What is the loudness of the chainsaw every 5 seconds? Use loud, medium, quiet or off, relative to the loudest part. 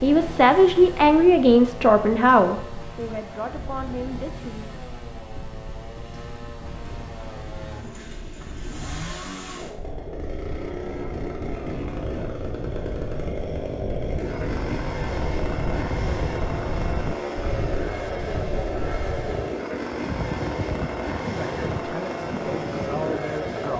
medium, medium, loud, loud, loud.